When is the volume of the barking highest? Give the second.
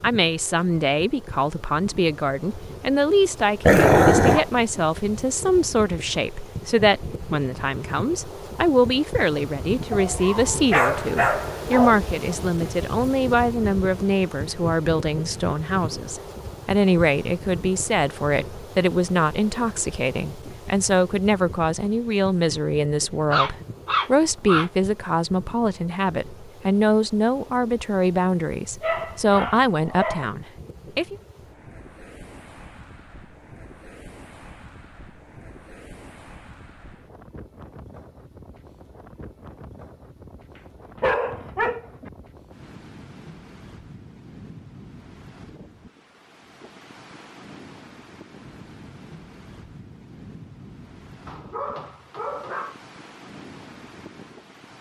4 s.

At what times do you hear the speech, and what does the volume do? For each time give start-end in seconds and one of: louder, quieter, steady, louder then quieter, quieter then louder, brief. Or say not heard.
0.0-31.1 steady.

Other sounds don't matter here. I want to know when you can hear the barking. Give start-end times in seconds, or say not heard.
3.6-4.5, 9.9-11.9, 23.3-24.7, 28.8-30.3, 40.5-42.1, 51.2-52.8.